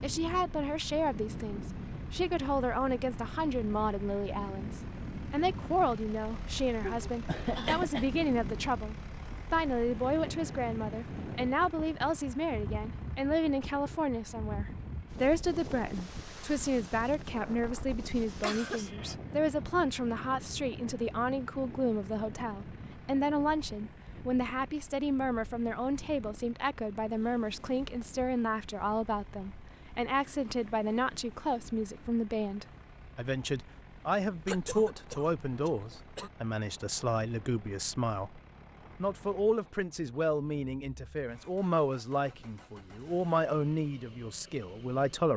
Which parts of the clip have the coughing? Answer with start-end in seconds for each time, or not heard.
6.8-8.2, 18.4-19.1, 34.5-36.3.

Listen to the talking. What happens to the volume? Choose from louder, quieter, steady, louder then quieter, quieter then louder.
steady.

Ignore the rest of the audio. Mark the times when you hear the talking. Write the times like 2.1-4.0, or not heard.
0.0-38.4, 39.0-45.3.